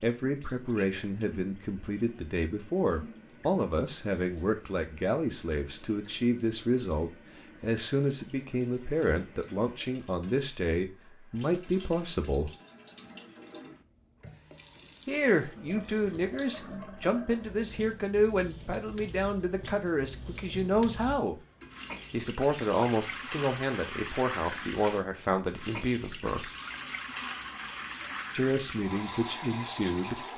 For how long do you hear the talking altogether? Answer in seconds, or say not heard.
25 s.